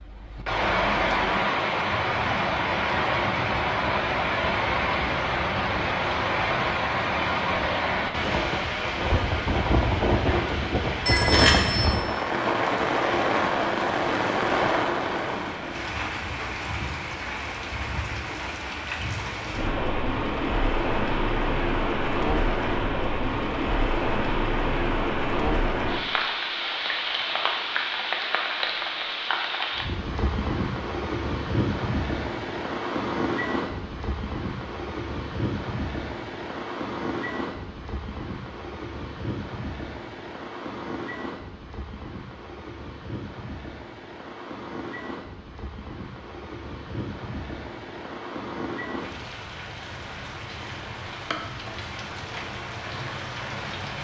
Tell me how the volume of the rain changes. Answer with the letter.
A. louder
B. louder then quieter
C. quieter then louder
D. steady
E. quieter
E.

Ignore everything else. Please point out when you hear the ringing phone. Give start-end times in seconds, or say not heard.
11.1-11.9.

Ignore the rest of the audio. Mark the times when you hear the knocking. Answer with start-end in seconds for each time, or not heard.
not heard.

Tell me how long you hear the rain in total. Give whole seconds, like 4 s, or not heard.
54 s.